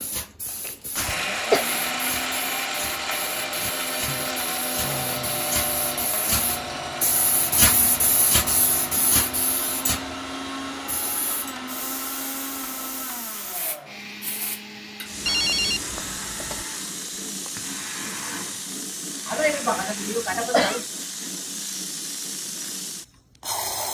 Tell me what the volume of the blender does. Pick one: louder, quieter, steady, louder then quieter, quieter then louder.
quieter.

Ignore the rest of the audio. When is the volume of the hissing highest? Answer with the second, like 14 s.
8 s.